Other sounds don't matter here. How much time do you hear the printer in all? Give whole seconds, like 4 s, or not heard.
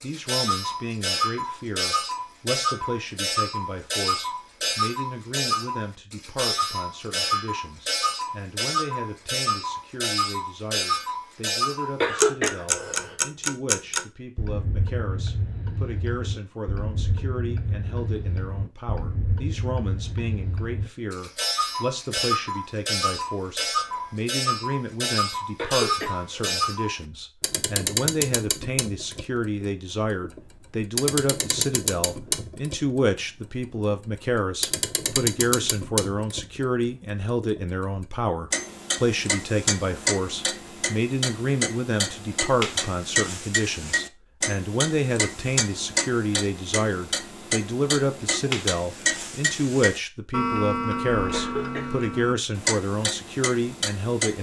not heard.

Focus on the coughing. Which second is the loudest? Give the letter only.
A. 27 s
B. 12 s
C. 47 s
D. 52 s
B.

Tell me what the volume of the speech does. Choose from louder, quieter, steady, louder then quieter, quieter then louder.
louder.